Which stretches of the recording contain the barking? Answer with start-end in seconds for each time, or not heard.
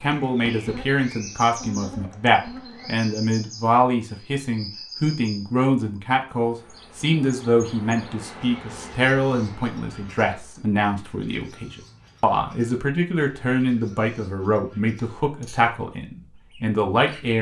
not heard.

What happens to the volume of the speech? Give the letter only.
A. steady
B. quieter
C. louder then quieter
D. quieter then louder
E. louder
A.